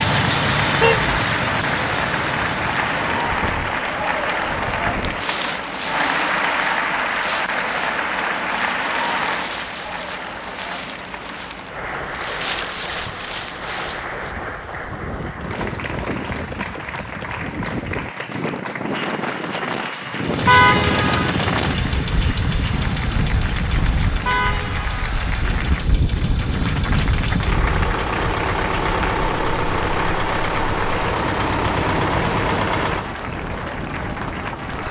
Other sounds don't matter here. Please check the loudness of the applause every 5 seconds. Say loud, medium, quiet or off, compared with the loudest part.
loud, loud, medium, medium, medium, medium, medium.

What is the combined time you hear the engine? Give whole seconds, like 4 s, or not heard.
16 s.